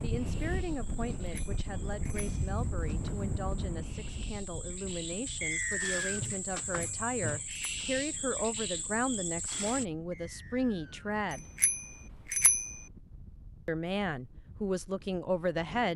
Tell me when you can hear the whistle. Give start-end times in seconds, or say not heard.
5.4-6.2, 10.1-11.1.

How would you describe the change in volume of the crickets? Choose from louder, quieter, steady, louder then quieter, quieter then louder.
louder.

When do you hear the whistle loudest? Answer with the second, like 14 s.
6 s.